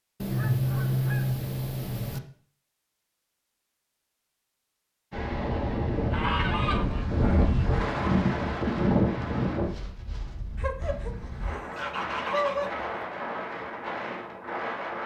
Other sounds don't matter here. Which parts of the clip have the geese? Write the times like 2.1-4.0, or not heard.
0.2-2.2, 6.1-7.7, 10.6-12.9.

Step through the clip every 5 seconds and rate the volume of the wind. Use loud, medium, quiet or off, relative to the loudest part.
off, loud, medium.